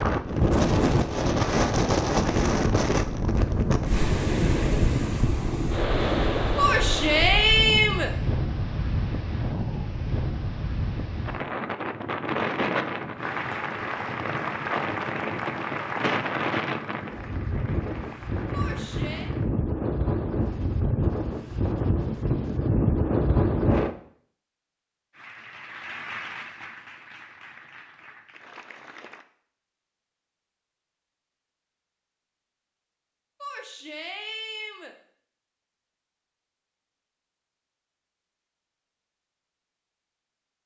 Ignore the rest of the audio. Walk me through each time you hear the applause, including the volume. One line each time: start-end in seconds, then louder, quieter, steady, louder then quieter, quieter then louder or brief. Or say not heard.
13.2-19.5 quieter
25.1-29.2 quieter.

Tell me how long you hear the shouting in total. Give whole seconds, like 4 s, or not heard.
4 s.